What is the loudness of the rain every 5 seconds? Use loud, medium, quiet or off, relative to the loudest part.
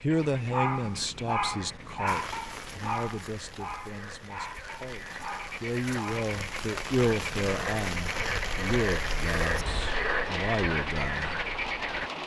medium, loud, loud.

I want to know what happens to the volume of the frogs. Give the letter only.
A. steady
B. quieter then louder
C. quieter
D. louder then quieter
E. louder
E.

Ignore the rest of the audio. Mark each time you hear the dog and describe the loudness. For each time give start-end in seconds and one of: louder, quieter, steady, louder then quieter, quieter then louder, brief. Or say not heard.
0.1-6.3 quieter.